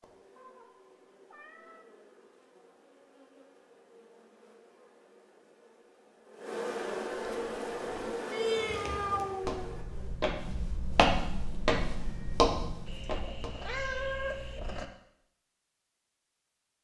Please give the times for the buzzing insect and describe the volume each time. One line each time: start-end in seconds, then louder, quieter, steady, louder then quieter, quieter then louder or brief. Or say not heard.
0.0-10.2 louder.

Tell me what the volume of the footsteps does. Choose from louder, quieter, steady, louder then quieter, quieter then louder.
louder.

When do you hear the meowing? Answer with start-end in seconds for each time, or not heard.
0.3-1.9, 8.3-9.7, 12.8-14.8.